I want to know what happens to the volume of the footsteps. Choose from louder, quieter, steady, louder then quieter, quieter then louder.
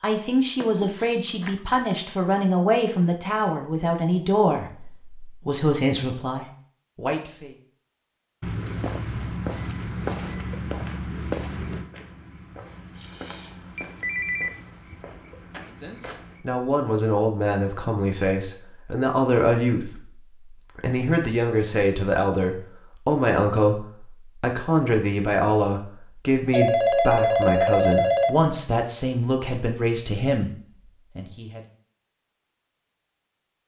quieter.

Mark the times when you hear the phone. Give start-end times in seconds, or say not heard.
0.6-1.9, 12.9-15.0, 26.5-28.4.